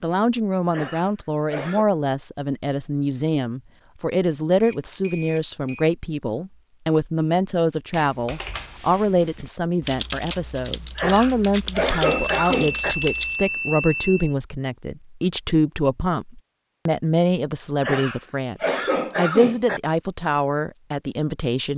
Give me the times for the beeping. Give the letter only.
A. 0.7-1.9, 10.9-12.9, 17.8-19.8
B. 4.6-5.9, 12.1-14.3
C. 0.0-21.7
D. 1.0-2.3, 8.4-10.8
B.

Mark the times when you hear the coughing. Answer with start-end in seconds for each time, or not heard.
0.7-1.9, 10.9-12.9, 17.8-19.8.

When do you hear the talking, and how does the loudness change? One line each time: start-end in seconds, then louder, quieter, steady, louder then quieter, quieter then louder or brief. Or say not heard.
0.0-21.7 steady.